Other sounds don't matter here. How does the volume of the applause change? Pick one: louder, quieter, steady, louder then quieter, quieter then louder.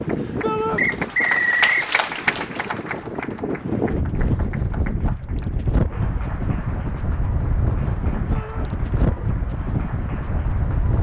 quieter.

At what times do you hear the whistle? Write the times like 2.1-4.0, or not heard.
0.8-1.8.